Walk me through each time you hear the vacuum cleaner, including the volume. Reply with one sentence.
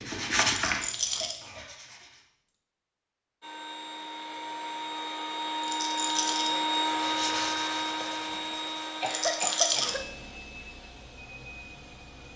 You can hear the vacuum cleaner from 3.4 to 12.3 s, getting louder then quieter.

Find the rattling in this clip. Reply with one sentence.
The rattling can be heard from 0.6 to 1.4 s, from 5.6 to 6.5 s and from 9.1 to 9.9 s.